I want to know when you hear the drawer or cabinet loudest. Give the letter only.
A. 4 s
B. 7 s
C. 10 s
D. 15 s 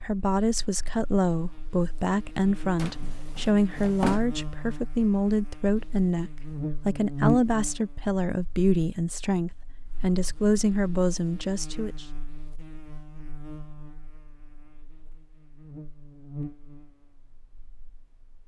A.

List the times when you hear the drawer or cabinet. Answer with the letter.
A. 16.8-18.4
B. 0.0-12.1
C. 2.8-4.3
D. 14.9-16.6
C.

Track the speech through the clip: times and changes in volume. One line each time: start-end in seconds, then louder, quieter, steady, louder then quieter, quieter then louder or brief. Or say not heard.
0.0-12.1 steady.